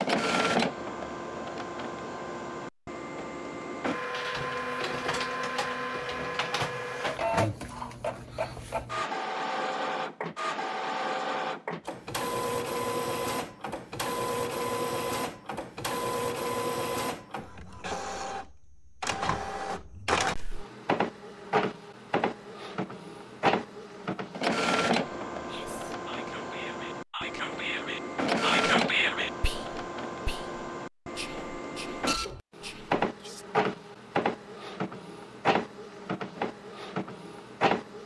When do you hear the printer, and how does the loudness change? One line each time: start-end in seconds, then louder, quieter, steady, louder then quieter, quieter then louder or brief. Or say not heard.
0.0-38.0 steady.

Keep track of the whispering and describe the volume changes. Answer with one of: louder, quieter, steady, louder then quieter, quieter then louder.
louder then quieter.